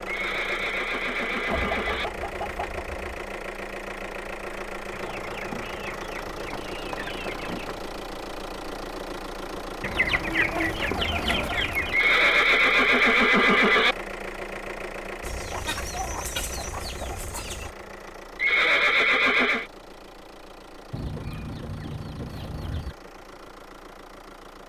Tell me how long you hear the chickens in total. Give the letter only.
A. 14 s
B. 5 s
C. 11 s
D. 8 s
C.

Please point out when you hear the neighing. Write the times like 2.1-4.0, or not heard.
0.1-2.1, 11.9-13.9, 18.4-19.7.